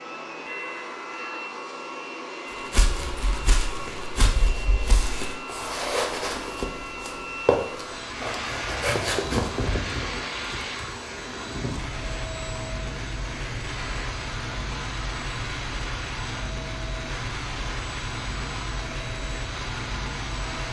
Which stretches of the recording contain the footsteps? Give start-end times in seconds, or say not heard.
2.7-9.7.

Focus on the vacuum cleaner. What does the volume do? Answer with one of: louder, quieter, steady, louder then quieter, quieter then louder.
steady.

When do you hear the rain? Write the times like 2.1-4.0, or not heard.
8.0-20.6.